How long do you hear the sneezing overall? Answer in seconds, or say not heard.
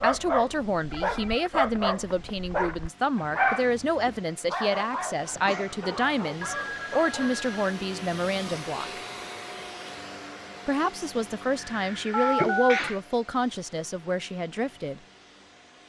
2 s.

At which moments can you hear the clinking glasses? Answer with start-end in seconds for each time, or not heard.
not heard.